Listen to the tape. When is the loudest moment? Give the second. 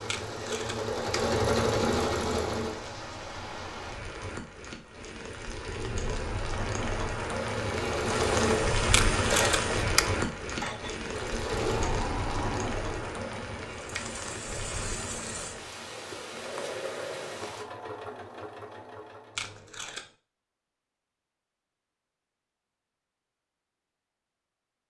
10 s.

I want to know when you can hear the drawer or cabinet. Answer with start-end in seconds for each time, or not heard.
not heard.